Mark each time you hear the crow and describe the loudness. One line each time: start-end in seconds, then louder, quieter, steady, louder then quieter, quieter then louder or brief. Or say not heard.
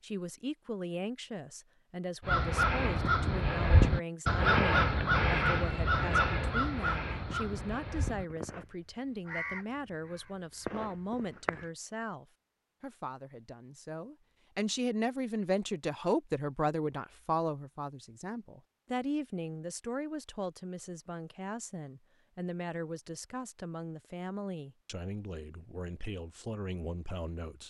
2.2-11.7 quieter.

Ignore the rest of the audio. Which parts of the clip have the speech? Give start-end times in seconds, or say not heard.
0.0-27.6.